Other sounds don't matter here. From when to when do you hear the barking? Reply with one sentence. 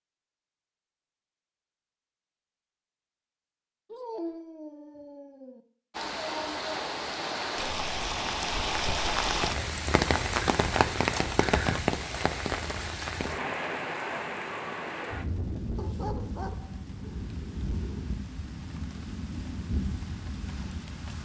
You can hear the barking from 3.9 to 5.6 s and from 15.8 to 18.1 s.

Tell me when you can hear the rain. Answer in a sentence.
You can hear the rain from 5.9 to 21.2 s.